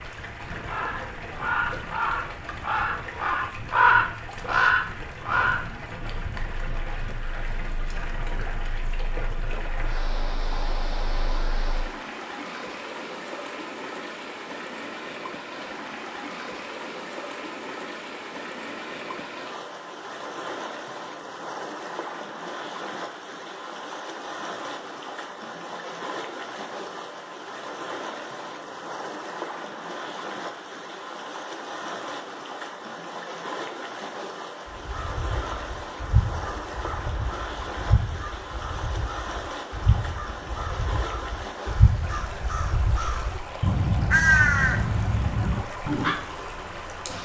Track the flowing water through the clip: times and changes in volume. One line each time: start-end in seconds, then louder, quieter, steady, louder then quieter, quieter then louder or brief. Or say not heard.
0.0-47.2 steady.